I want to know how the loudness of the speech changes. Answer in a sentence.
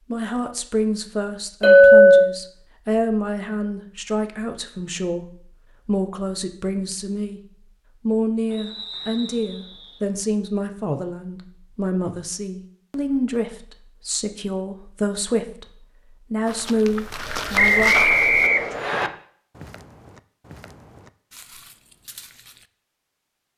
The volume of the speech stays about the same.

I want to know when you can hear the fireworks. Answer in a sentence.
You can't hear the fireworks here.